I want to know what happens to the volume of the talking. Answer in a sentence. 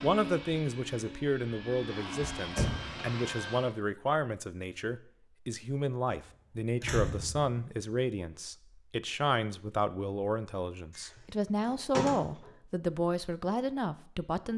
The loudness of the talking stays about the same.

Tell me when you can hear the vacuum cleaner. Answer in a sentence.
The vacuum cleaner can be heard from 0.0 to 3.8 s.